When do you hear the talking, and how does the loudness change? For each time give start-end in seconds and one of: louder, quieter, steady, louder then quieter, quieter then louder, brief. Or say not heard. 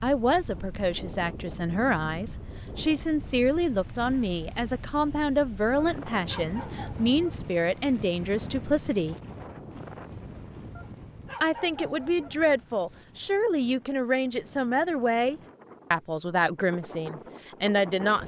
0.0-9.2 steady
11.4-18.2 steady.